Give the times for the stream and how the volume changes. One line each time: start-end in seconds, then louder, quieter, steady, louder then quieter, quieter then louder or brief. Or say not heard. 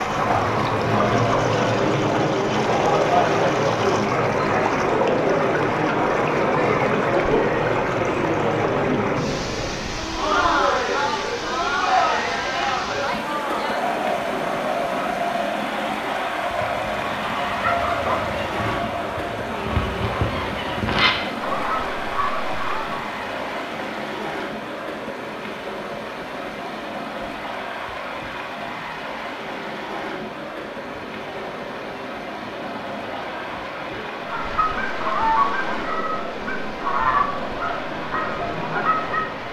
0.0-39.4 quieter.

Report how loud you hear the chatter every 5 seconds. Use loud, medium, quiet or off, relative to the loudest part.
loud, loud, loud, medium, quiet, quiet, quiet, medium.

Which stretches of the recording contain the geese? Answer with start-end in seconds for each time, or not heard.
16.6-23.0, 34.2-39.4.